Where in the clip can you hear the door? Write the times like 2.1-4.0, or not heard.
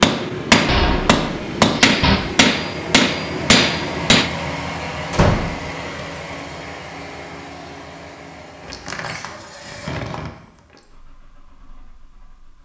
0.7-2.2, 5.1-5.7, 8.6-10.8.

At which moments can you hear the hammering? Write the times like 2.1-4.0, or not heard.
0.0-4.3.